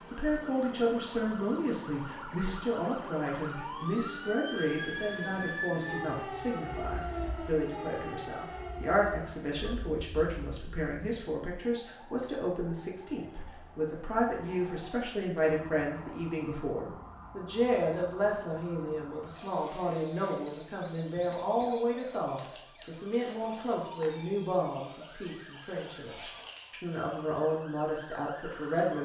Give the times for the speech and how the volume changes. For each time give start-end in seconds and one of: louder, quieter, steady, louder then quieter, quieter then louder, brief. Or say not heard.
0.1-28.9 steady.